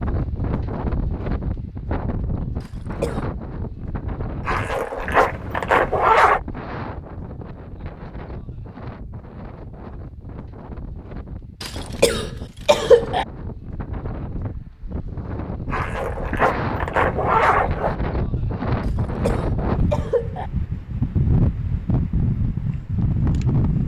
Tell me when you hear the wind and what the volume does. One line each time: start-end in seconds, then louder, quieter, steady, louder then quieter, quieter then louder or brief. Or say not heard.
0.0-23.8 quieter then louder.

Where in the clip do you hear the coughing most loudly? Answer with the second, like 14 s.
13 s.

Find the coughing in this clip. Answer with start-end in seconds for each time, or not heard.
2.6-3.2, 11.6-13.2, 18.8-20.5.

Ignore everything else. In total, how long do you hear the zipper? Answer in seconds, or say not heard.
4 s.